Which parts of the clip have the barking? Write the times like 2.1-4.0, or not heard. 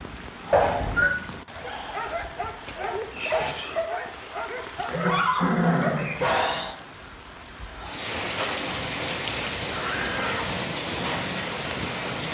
1.6-6.8.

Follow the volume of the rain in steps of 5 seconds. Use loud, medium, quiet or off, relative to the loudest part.
medium, loud, loud.